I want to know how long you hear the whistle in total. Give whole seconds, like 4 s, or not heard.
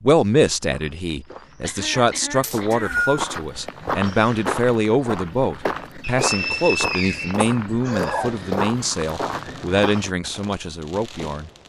3 s.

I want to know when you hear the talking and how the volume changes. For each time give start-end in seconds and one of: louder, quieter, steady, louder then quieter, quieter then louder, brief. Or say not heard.
0.0-11.5 steady.